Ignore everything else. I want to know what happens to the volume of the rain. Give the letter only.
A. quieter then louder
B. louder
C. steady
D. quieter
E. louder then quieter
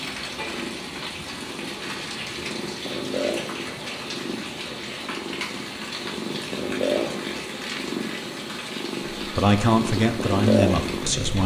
C.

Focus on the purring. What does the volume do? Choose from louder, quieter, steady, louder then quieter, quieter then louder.
louder.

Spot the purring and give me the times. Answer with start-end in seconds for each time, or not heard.
0.0-11.4.